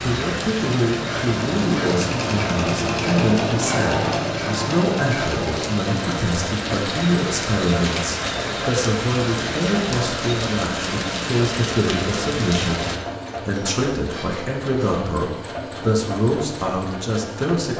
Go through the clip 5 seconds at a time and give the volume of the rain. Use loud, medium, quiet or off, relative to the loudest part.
loud, loud, loud, off.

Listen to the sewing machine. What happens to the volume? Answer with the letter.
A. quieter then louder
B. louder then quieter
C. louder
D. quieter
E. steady
D.